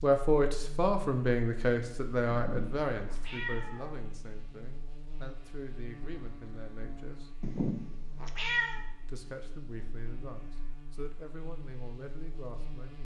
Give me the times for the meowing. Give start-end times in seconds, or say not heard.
2.3-4.0, 7.4-8.8.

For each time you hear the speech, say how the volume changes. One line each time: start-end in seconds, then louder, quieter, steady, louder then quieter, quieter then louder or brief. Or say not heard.
0.0-7.3 quieter
8.9-12.9 steady.